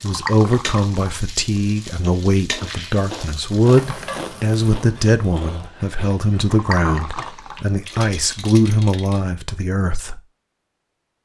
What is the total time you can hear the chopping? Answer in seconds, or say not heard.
not heard.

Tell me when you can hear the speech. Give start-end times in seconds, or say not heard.
0.0-10.2.